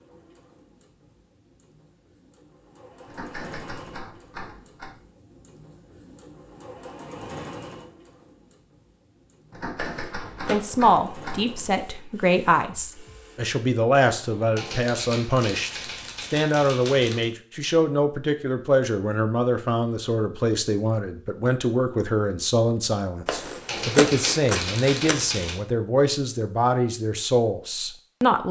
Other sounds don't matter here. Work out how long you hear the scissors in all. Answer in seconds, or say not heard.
3 s.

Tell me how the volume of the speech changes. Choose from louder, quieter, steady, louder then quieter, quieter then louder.
steady.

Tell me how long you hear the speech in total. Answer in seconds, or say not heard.
18 s.